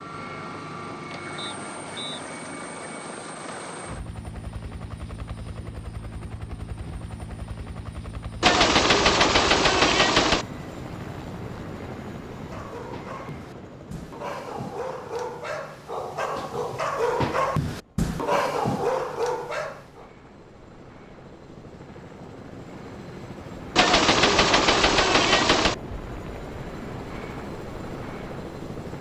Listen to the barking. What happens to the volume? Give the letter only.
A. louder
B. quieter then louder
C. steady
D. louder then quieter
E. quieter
A.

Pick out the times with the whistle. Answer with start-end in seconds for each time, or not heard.
1.4-2.2.